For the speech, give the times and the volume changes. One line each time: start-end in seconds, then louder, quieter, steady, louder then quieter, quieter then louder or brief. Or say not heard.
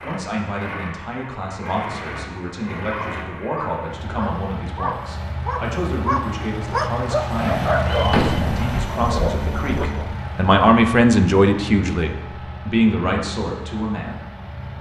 0.0-14.2 louder.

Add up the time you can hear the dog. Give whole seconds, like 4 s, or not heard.
7 s.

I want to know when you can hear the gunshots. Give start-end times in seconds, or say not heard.
7.3-8.8.